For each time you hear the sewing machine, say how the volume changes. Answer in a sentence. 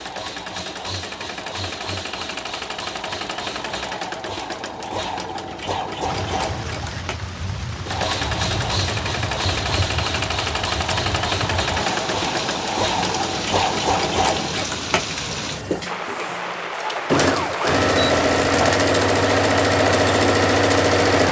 The sewing machine can be heard from 0.0 to 21.2 s, getting louder.